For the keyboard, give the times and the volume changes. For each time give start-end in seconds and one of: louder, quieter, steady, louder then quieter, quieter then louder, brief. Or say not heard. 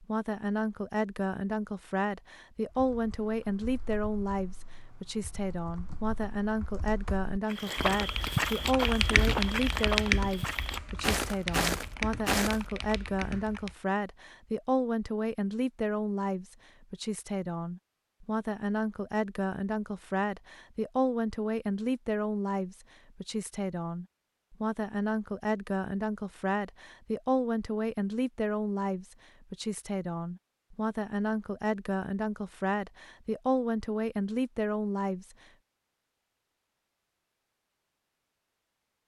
2.6-13.8 louder then quieter.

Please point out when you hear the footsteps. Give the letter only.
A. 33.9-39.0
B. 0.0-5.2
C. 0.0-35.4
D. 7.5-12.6
D.